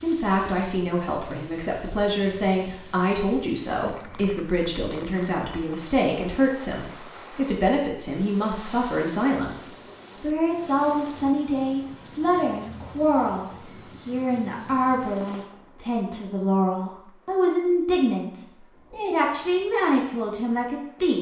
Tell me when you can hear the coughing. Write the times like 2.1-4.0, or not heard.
not heard.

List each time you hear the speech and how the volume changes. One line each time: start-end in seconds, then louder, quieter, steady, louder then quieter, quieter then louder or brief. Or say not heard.
0.0-21.1 steady.